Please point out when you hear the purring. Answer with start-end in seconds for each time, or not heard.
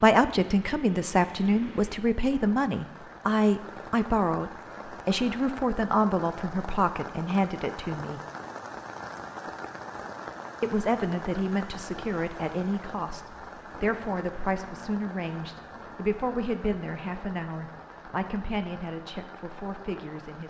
not heard.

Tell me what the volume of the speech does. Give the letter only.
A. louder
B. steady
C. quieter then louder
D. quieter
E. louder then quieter
D.